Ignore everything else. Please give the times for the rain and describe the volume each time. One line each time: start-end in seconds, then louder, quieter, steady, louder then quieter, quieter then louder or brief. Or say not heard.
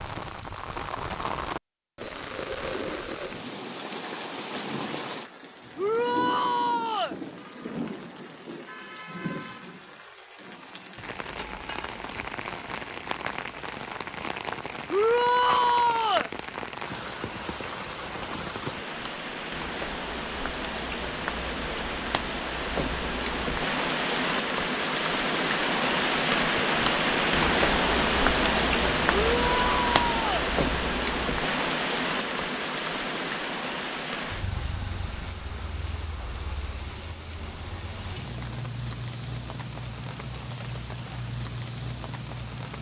0.0-42.7 louder then quieter.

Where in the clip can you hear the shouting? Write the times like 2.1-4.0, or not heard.
5.8-7.2, 14.9-16.3, 29.1-30.5.